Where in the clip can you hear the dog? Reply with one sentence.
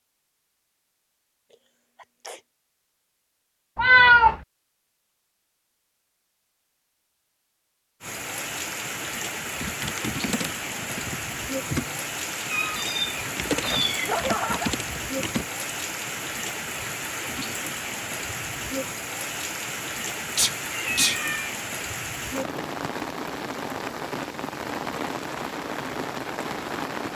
The dog can't be heard in this clip.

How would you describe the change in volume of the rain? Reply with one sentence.
The loudness of the rain stays about the same.